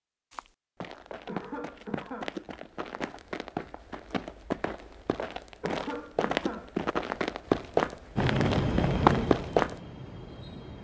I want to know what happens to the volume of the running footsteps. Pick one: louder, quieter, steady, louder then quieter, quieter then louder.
louder.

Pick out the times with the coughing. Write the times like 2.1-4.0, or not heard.
1.2-2.4, 5.6-6.8.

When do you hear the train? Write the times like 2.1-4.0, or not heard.
8.2-10.7.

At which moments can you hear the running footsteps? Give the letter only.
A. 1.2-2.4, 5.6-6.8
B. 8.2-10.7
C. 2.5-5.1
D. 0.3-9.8
D.